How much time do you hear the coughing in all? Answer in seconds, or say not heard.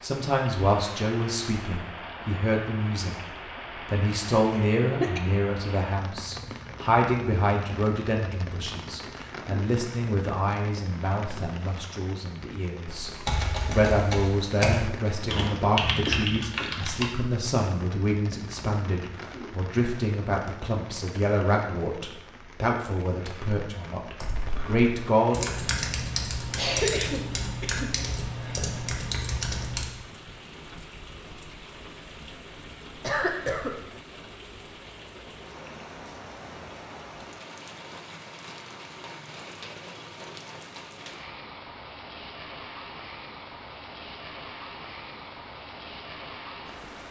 3 s.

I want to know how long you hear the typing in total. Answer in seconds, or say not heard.
10 s.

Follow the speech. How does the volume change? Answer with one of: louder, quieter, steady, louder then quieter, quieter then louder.
steady.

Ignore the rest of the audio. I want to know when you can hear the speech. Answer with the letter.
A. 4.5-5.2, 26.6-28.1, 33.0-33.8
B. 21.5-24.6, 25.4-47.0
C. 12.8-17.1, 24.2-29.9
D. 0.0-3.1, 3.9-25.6
D.